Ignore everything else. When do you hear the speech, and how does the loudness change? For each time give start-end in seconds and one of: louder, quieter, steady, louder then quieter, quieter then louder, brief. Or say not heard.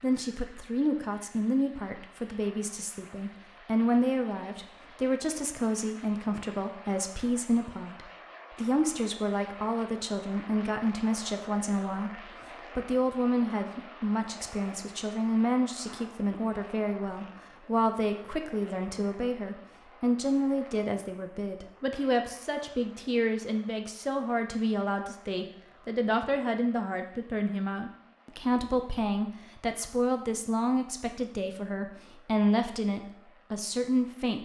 0.0-34.4 steady.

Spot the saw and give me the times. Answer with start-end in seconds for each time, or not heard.
not heard.